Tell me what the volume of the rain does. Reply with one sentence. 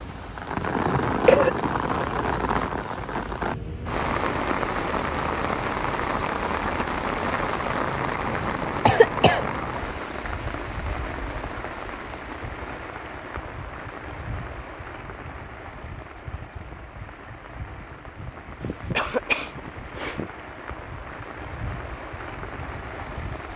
The volume of the rain goes down.